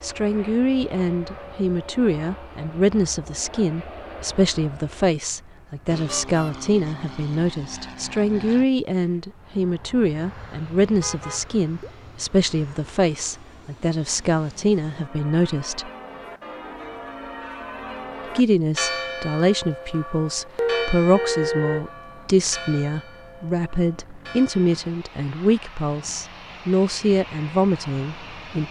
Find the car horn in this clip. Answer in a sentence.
The car horn can be heard from 6.0 to 6.5 s, from 11.0 to 11.9 s and from 20.6 to 21.9 s.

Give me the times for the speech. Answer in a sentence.
You can hear the speech from 0.0 to 15.9 s and from 18.4 to 28.6 s.